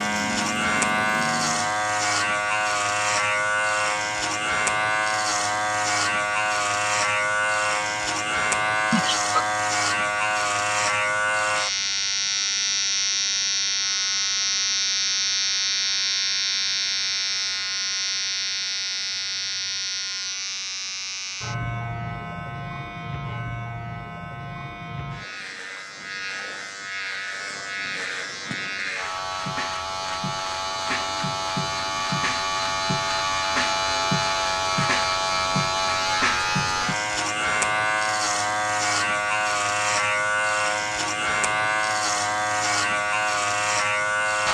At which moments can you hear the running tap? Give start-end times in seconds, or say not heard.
0.0-1.8.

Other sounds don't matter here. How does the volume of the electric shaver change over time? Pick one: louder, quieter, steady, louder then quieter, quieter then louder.
quieter then louder.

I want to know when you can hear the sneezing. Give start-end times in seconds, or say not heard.
8.9-9.4.